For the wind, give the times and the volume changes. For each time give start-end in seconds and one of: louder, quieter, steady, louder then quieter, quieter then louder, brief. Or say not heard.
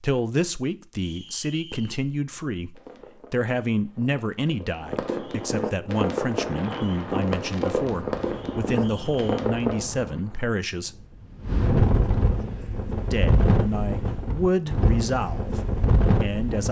5.8-16.6 louder.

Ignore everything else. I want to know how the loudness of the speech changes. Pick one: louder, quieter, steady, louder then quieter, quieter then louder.
steady.